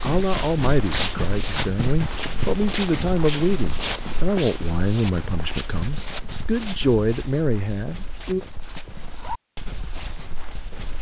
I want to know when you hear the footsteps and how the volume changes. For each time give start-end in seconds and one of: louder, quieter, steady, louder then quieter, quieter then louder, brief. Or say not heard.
0.0-10.9 quieter.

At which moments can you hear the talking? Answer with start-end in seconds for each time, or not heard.
0.0-8.4.